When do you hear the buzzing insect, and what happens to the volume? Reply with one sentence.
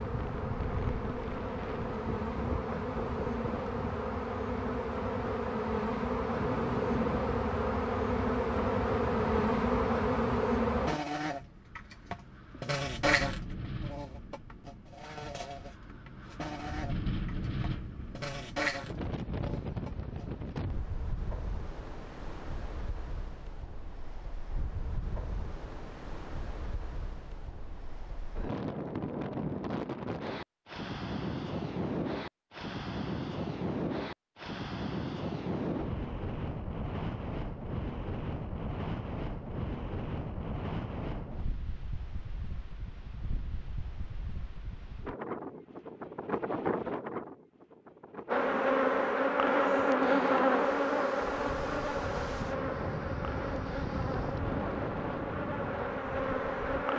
You can hear the buzzing insect from 0.0 to 20.2 s, getting louder then quieter; and from 48.3 to 56.9 s, getting quieter.